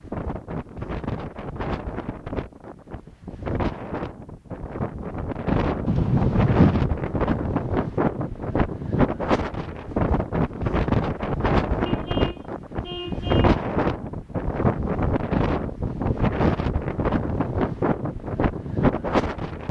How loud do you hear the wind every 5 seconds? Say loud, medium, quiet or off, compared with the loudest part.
medium, loud, loud, loud.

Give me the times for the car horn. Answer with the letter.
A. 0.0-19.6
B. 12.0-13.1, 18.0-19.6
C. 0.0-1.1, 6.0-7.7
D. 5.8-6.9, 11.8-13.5
D.